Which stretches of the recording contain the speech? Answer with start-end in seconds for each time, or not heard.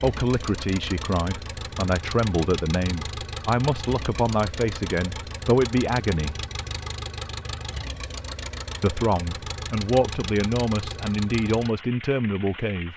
0.0-6.4, 8.8-12.9.